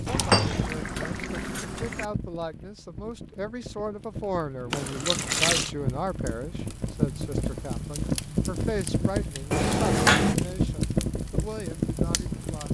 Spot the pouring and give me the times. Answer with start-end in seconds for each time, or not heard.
0.1-2.0, 4.7-5.7, 9.5-10.3.